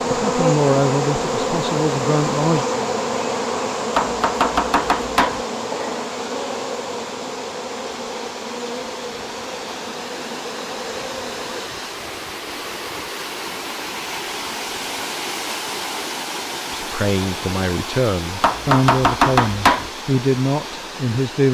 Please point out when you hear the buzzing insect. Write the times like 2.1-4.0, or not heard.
0.0-11.7.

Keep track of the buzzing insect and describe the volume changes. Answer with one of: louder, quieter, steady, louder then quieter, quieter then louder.
quieter.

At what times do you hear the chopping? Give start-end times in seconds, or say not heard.
4.0-5.4, 18.4-19.9.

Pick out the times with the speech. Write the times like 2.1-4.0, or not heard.
0.1-2.6, 16.7-21.5.